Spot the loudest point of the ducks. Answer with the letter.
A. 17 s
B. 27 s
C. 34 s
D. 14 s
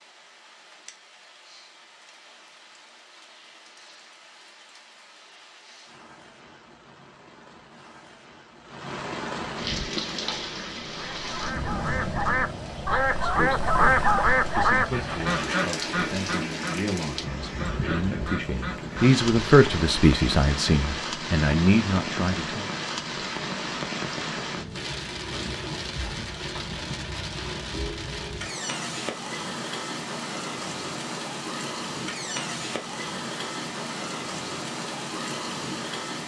D.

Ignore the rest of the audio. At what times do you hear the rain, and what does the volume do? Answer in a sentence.
The rain can be heard from 0.0 to 36.2 s, getting louder.